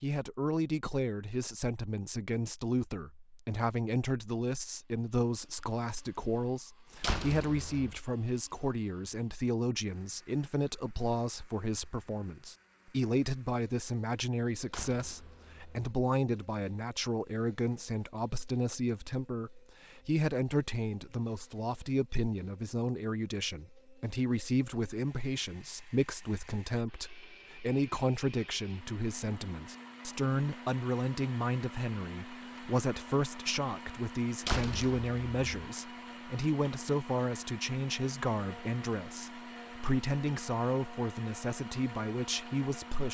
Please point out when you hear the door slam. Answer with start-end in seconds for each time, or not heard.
7.0-8.0, 14.7-15.9, 34.5-35.4.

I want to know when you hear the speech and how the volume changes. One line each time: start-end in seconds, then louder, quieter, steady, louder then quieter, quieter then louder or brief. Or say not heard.
0.0-43.0 steady.